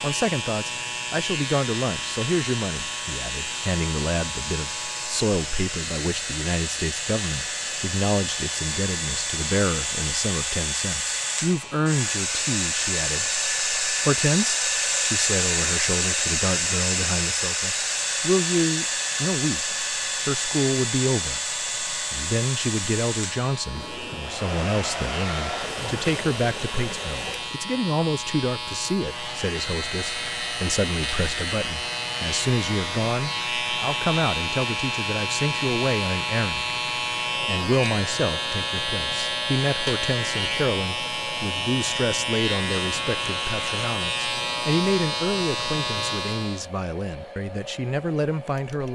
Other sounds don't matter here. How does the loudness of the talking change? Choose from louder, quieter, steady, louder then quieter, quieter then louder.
steady.